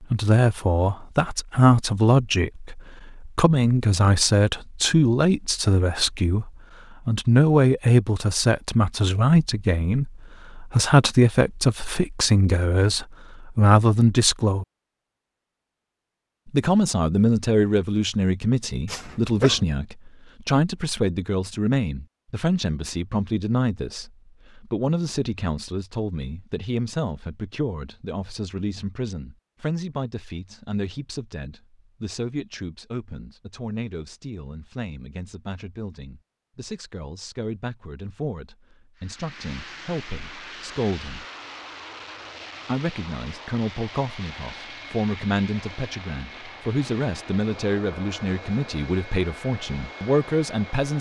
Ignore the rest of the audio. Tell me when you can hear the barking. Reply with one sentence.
The barking can be heard from 18.9 to 19.6 s.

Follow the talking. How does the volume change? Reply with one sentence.
The loudness of the talking goes down, then up.